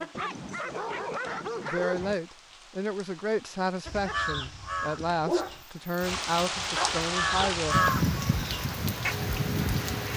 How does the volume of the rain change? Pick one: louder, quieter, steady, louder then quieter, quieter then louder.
louder.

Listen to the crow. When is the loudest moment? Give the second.
8 s.